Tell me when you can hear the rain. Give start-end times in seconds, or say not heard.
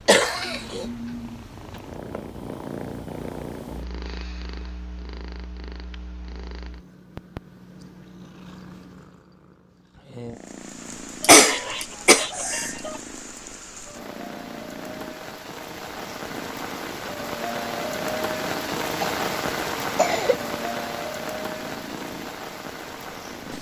10.3-23.5.